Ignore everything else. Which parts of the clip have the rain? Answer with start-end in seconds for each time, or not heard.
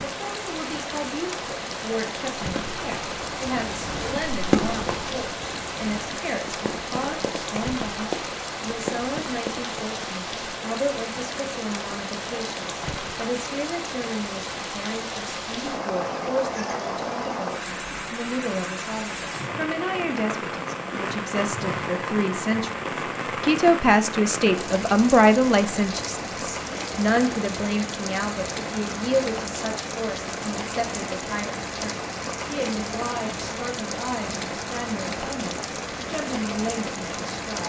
0.0-37.6.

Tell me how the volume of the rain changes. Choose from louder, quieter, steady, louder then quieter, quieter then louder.
steady.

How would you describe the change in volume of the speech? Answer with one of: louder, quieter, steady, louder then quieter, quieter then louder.
louder then quieter.